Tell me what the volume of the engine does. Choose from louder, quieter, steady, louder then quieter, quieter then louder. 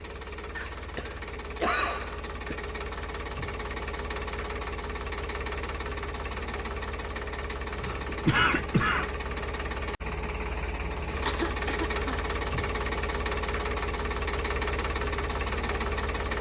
louder.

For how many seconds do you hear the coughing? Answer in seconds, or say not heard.
4 s.